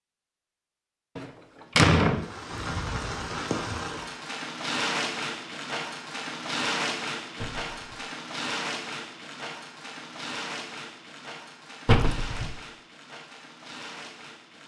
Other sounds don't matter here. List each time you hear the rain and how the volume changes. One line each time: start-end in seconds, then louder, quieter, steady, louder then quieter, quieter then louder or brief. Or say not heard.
2.1-14.6 quieter.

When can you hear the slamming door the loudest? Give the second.
2 s.